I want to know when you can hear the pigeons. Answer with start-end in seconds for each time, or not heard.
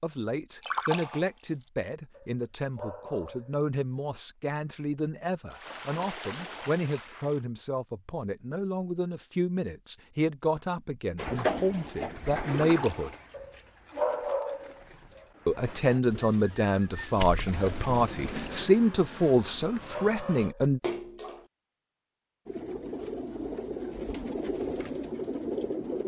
11.2-18.6, 22.4-26.0.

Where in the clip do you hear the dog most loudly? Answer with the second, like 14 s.
14 s.